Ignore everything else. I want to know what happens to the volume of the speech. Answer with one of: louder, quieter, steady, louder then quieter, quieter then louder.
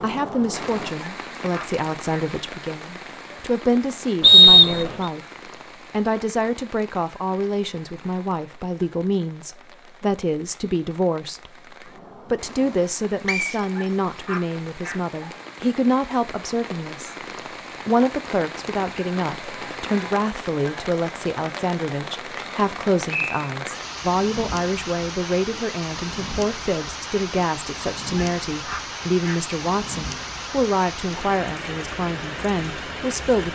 steady.